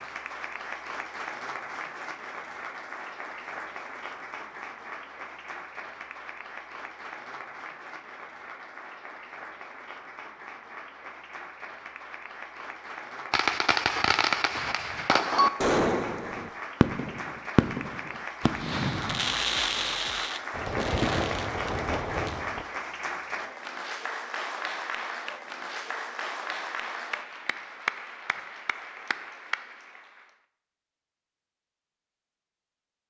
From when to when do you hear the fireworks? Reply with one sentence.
You can hear the fireworks from 13.3 to 22.6 s.